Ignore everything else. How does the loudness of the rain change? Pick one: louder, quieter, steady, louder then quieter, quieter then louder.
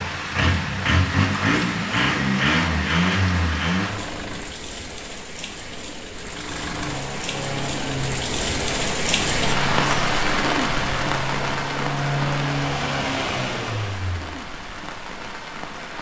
louder then quieter.